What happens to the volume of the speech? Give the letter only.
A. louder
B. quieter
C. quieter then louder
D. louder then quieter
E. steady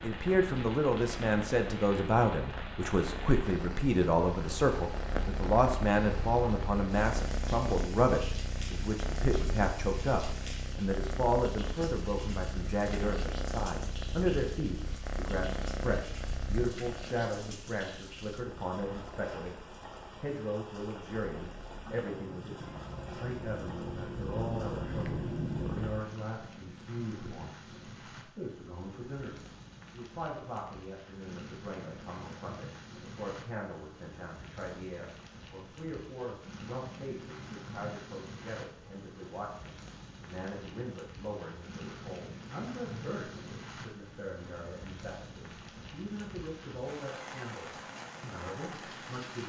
B.